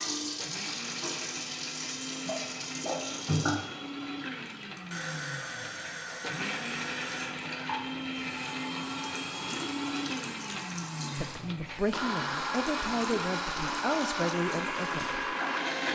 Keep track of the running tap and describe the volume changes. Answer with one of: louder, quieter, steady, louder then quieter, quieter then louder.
quieter.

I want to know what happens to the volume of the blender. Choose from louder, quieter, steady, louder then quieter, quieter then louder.
louder.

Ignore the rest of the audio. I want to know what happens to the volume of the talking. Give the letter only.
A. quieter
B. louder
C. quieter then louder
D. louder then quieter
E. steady
E.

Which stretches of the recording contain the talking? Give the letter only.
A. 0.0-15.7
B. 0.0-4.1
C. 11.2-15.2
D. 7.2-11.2
C.